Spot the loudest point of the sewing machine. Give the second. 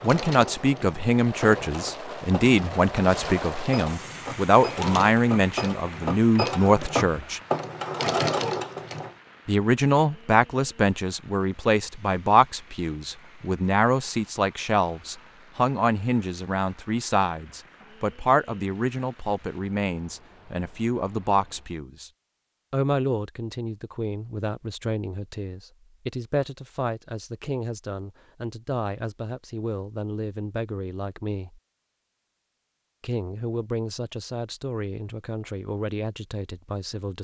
8 s.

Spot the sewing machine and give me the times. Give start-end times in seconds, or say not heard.
0.0-9.2.